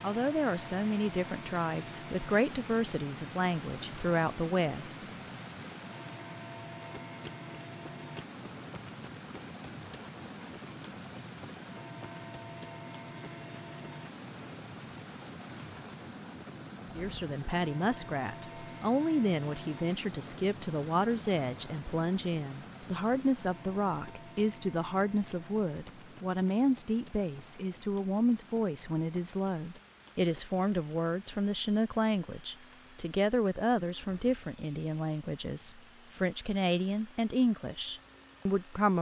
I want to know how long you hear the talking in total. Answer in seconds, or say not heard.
27 s.